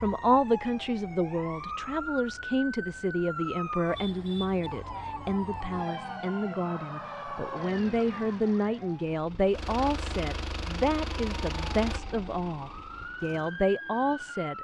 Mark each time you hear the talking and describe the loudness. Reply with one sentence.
The talking can be heard from 0.0 to 14.5 s, at a steady volume.